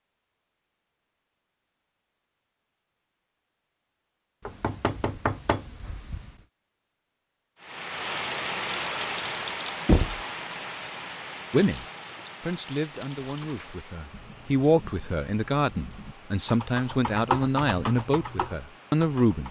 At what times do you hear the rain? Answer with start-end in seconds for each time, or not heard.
7.6-19.4.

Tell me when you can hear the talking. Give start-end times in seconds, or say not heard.
11.5-19.4.